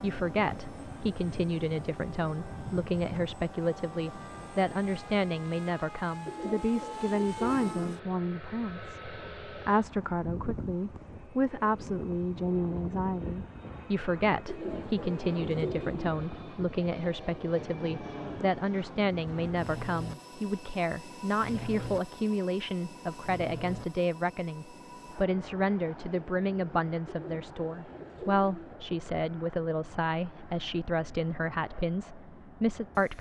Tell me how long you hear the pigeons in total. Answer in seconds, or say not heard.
5 s.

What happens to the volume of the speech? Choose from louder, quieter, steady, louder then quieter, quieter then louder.
steady.